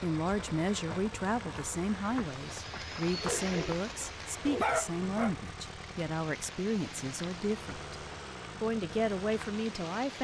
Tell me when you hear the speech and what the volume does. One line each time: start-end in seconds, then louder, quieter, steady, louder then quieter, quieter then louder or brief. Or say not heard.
0.0-10.1 steady.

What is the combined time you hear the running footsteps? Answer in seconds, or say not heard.
not heard.